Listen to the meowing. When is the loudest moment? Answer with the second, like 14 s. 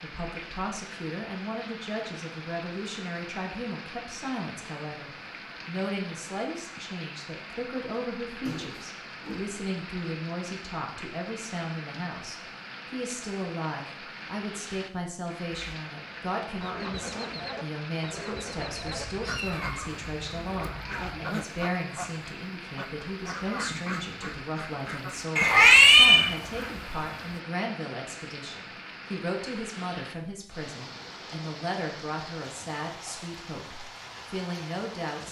26 s.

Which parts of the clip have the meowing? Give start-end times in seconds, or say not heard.
8.4-9.6, 18.6-21.2, 25.4-26.2.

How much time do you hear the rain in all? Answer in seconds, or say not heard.
35 s.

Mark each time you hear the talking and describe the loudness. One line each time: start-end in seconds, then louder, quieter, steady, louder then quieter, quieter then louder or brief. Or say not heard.
0.0-35.2 steady.